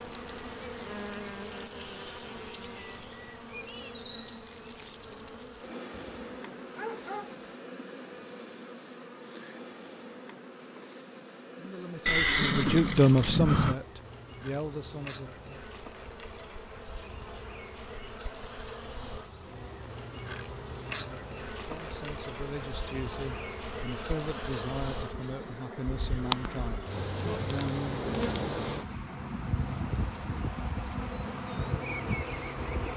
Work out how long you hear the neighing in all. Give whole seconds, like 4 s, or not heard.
2 s.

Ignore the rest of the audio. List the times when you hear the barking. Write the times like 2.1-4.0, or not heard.
5.9-7.3.